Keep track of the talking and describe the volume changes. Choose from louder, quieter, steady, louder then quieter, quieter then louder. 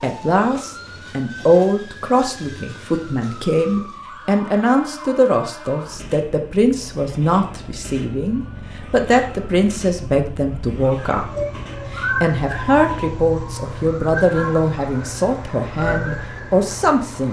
steady.